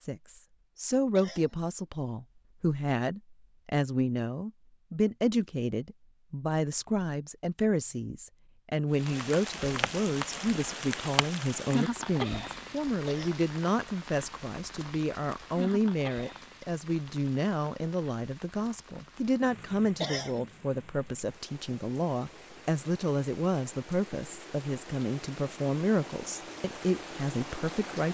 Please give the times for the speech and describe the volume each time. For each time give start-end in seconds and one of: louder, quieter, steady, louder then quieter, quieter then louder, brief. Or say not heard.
0.1-28.0 steady.